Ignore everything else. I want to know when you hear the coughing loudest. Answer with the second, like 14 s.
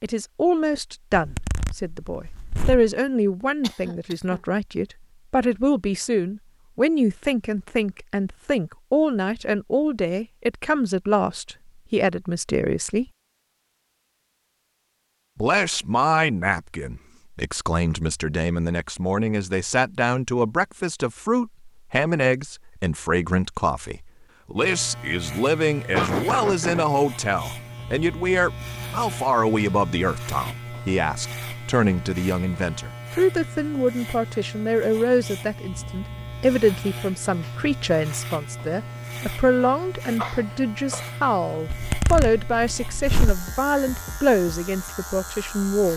26 s.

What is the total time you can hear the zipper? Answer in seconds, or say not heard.
4 s.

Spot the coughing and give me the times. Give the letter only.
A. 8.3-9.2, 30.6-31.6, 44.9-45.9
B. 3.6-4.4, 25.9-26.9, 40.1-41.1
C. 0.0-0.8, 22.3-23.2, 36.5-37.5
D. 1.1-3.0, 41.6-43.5
B.